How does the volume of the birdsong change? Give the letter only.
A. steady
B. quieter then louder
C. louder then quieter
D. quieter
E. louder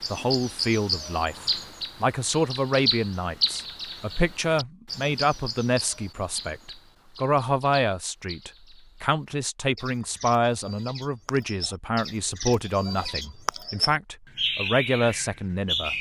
B.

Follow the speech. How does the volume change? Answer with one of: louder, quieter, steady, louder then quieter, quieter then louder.
steady.